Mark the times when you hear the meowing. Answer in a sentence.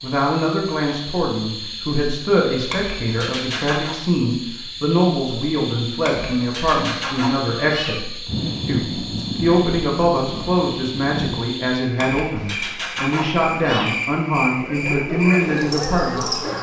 The meowing can be heard from 2.6 to 4.0 s, from 6.0 to 8.1 s and from 11.9 to 14.0 s.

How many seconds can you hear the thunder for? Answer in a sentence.
You can hear the thunder for 3 seconds altogether.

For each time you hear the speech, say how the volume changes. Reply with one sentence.
You can hear the speech from 0.0 to 16.4 s, at a steady volume.